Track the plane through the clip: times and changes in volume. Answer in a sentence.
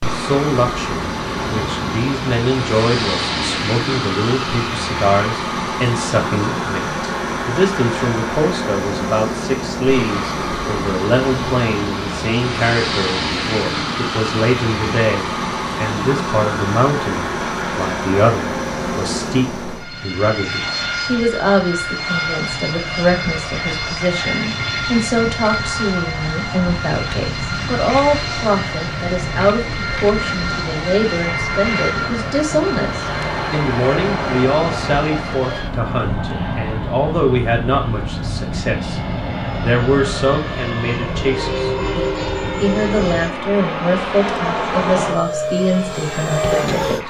You can hear the plane from 0.0 to 47.0 s, at a steady volume.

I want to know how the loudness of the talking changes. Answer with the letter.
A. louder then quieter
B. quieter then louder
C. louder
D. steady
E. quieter
D.